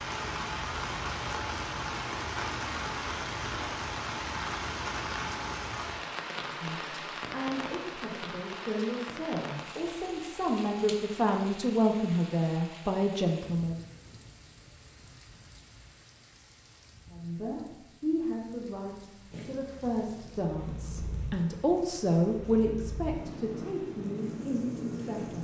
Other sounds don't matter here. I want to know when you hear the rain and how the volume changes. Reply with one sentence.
You can hear the rain from 0.0 to 25.3 s, getting quieter.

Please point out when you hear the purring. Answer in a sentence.
The purring can be heard from 19.3 to 25.3 s.